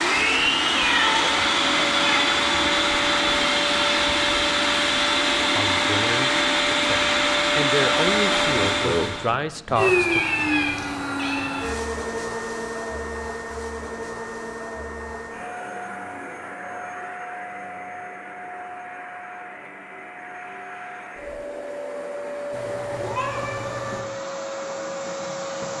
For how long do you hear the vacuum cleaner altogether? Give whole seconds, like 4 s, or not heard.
26 s.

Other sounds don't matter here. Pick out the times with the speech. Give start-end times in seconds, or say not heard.
5.5-10.2.